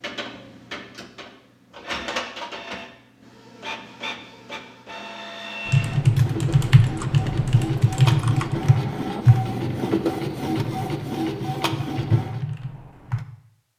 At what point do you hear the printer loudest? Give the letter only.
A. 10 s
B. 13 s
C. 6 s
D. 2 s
A.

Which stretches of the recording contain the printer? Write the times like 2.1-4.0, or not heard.
0.0-12.4.